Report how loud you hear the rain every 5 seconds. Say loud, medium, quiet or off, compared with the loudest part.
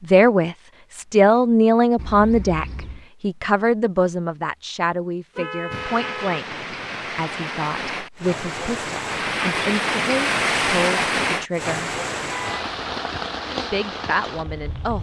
off, loud, loud.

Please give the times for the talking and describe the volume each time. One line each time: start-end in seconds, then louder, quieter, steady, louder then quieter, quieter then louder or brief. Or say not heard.
0.0-12.0 quieter
13.7-14.9 brief.